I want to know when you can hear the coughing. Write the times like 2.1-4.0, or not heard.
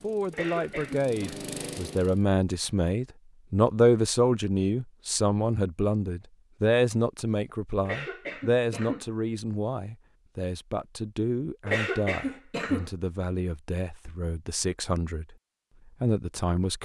0.3-1.4, 7.8-9.1, 11.7-12.8.